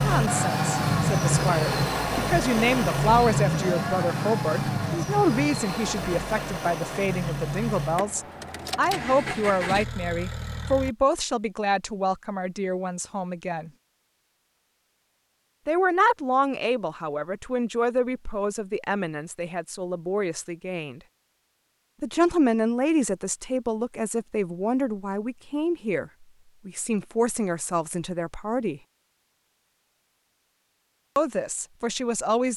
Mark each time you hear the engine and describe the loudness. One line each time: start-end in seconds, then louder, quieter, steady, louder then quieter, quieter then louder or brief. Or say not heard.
0.0-10.9 quieter.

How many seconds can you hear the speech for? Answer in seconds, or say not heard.
27 s.